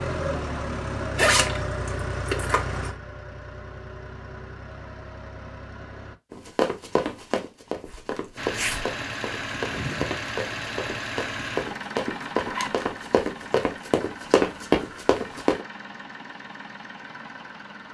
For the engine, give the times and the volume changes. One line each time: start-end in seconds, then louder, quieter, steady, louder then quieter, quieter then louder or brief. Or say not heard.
0.0-6.2 quieter
8.3-17.8 quieter.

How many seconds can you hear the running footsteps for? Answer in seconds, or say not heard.
9 s.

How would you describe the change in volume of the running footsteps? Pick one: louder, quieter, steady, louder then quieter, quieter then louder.
louder.